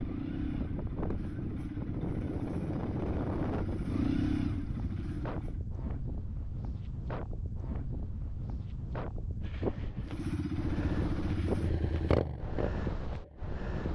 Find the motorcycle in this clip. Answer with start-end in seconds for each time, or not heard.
0.0-5.7, 10.1-13.9.